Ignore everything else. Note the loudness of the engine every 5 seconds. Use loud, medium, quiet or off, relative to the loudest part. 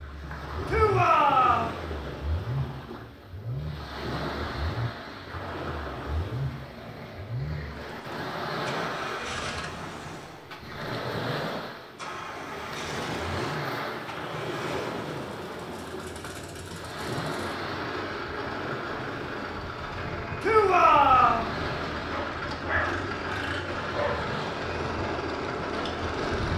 medium, medium, medium, medium, loud, loud.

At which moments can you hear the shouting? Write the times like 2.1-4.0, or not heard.
0.7-1.8, 20.4-21.5.